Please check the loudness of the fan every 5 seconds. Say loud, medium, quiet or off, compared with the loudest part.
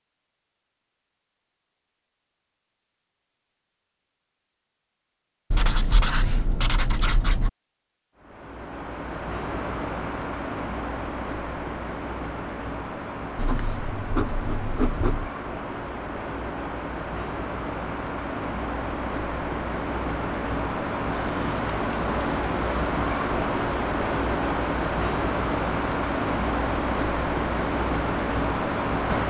off, medium, medium, medium, loud, loud.